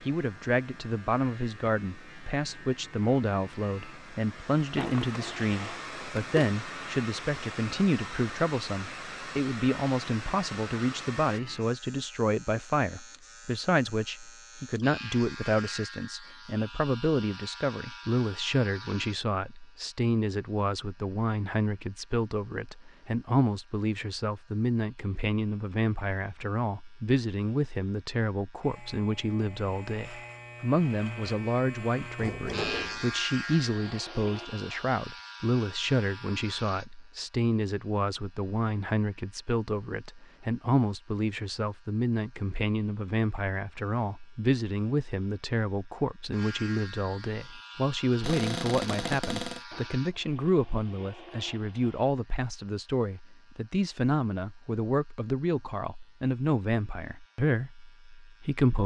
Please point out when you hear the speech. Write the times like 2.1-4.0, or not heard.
0.0-58.8.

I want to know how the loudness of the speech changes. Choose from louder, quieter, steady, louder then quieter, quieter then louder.
steady.